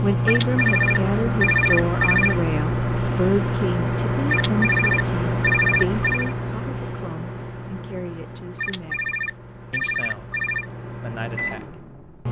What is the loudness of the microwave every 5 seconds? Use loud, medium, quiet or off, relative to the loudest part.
loud, medium, medium.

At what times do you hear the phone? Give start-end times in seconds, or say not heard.
0.2-2.4, 4.2-6.3, 8.6-10.7.